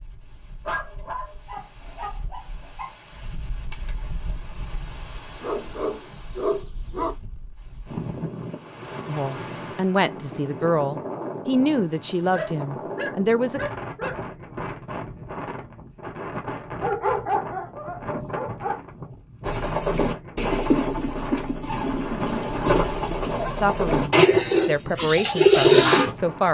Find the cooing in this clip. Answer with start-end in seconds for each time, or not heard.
19.4-26.1.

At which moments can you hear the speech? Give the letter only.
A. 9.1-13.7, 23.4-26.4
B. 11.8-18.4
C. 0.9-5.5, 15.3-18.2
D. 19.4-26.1
A.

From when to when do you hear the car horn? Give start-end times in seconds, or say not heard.
not heard.